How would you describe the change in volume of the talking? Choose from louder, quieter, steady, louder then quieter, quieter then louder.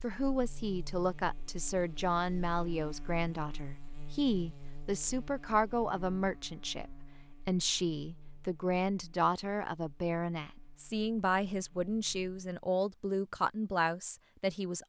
steady.